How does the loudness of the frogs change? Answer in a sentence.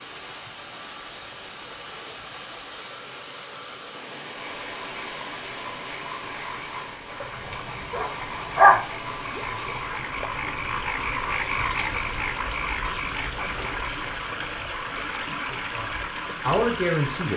The volume of the frogs goes up, then down.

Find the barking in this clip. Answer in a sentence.
You can hear the barking from 7.2 to 8.8 s.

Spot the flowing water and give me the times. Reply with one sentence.
The flowing water can be heard from 0.0 to 17.3 s.